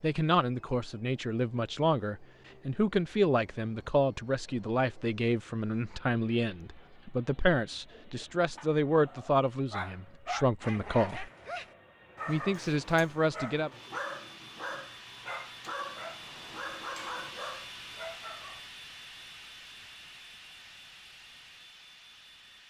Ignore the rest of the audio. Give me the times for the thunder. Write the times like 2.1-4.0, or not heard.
not heard.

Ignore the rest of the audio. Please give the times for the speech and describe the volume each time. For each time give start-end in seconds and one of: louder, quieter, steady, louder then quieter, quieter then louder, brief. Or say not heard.
0.0-11.2 steady
12.2-13.7 brief.